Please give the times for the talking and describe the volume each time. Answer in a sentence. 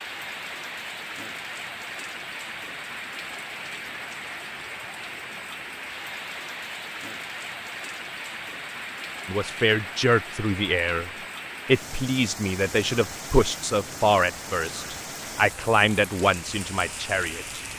You can hear the talking from 9.2 to 17.6 s, at a steady volume.